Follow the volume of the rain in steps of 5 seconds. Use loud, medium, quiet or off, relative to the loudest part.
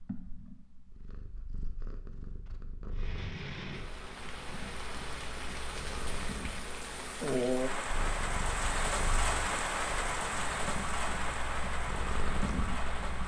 medium, loud, loud.